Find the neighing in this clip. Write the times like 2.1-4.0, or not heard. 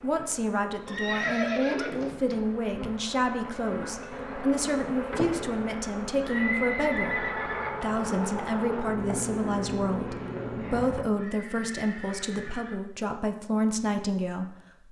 0.8-2.4, 6.2-7.7, 11.2-12.8.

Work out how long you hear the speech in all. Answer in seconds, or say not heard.
14 s.